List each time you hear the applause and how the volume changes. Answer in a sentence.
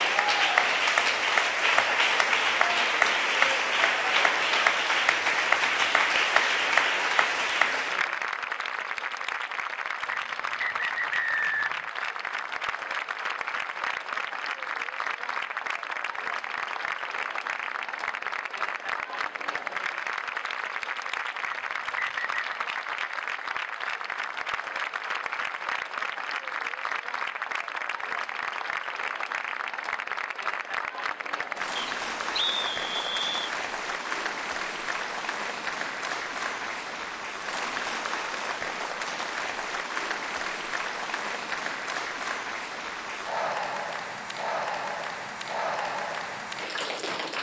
You can hear the applause from 0.0 to 47.3 s, getting quieter.